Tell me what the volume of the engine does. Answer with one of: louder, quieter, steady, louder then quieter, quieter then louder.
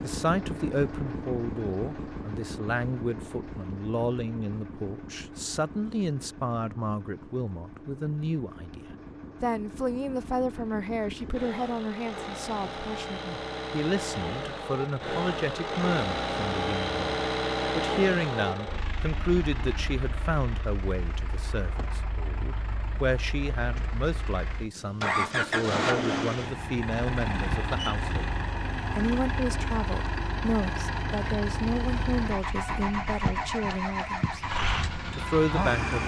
louder.